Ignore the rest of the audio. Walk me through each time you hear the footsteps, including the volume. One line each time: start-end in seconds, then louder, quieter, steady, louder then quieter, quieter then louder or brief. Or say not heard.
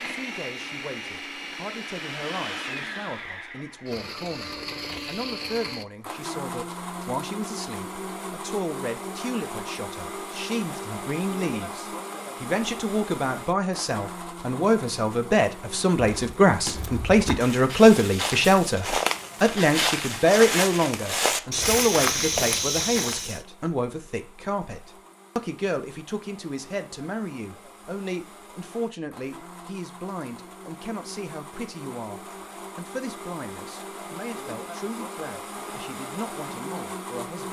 15.9-23.4 louder.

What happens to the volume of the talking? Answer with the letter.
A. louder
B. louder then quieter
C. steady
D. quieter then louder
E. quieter
B.